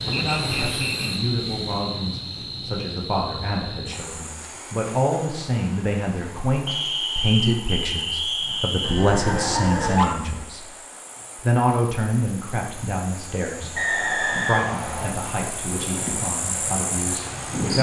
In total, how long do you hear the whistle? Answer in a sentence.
You can hear the whistle for 5 seconds altogether.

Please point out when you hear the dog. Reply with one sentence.
You can hear the dog from 8.8 to 10.2 s.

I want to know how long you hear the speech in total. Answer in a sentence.
You can hear the speech for 17 seconds altogether.